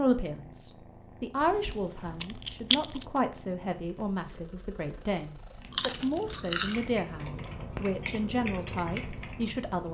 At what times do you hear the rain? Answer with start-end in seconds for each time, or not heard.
not heard.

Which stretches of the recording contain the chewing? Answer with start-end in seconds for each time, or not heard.
1.4-3.0, 5.7-6.9.